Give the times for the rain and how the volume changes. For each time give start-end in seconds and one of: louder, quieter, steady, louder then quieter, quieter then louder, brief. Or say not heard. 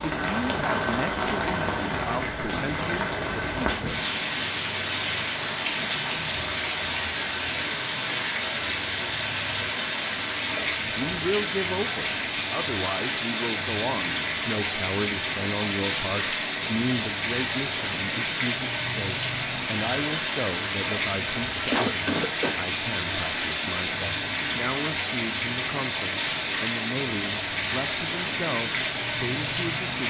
0.0-30.0 steady.